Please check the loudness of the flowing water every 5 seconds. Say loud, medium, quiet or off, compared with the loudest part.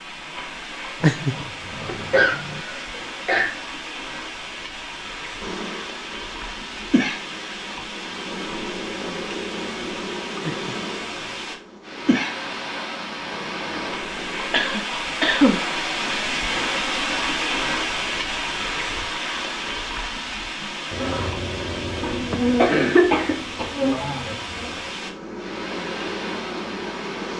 medium, medium, medium, loud, medium, medium.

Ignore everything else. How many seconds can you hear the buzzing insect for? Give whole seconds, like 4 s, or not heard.
16 s.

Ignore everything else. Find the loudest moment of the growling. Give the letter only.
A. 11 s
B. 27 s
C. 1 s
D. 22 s
C.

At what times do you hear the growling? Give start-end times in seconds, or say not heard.
1.0-2.6, 10.4-11.4, 20.9-22.7.